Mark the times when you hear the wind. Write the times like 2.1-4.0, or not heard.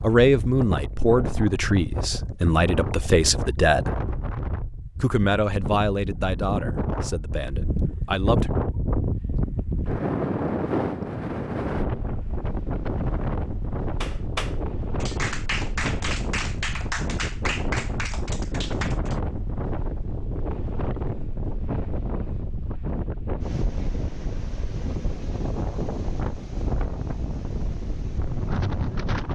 0.0-29.3.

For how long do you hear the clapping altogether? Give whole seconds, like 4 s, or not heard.
5 s.